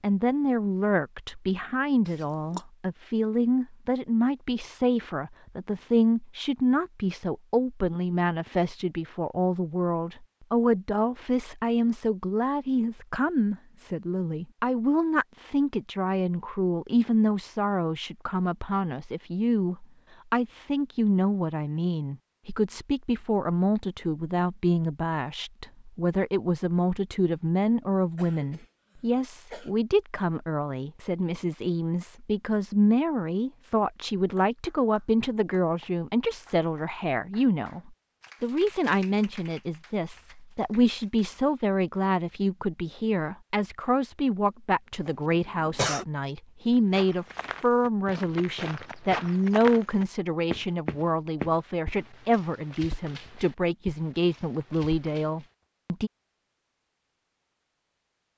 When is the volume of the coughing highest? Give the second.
46 s.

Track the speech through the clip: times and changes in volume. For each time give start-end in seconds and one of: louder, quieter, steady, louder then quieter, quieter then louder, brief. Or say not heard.
0.0-56.1 steady.